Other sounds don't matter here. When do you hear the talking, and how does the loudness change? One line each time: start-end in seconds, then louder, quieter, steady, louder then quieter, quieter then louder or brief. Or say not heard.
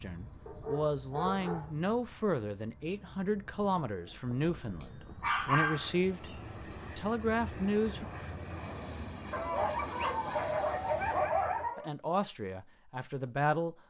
0.0-8.1 steady
11.8-13.8 brief.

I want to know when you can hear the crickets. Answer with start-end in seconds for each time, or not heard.
not heard.